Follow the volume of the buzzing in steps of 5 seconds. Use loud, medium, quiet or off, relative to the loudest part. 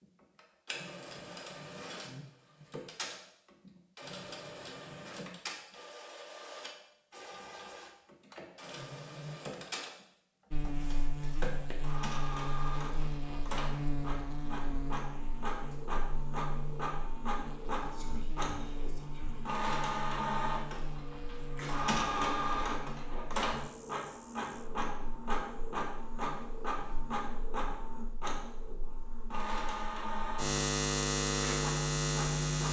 off, off, medium, quiet, quiet, quiet, loud.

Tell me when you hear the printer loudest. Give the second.
22 s.